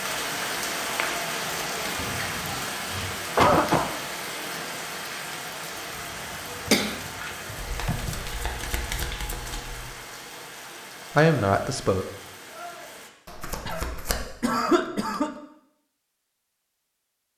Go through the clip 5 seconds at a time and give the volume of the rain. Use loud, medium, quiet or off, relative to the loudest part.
loud, medium, medium, off.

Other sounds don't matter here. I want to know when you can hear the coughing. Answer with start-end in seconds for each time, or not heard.
1.9-3.9, 6.7-8.2, 13.7-15.3.